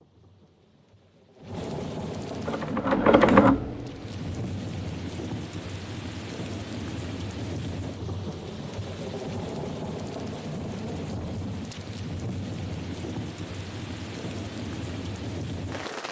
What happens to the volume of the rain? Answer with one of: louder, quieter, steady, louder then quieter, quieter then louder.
steady.